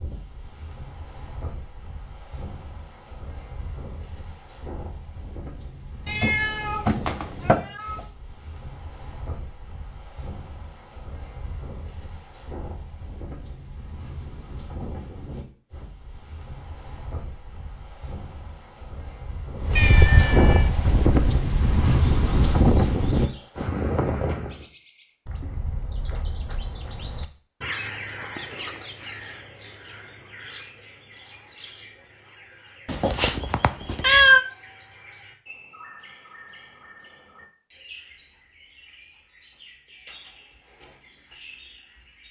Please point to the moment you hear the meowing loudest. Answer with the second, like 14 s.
34 s.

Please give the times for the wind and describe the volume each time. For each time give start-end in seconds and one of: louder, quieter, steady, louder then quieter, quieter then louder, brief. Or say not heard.
0.0-24.6 louder.